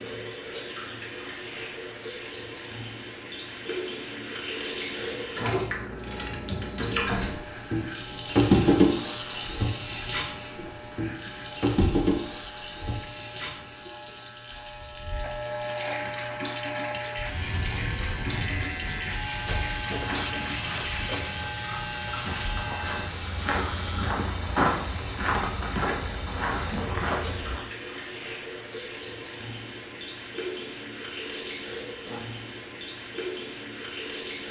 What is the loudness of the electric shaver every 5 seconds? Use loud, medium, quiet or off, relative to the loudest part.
off, medium, medium, loud, loud, off, off.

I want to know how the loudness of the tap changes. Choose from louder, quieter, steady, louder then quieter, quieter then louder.
louder then quieter.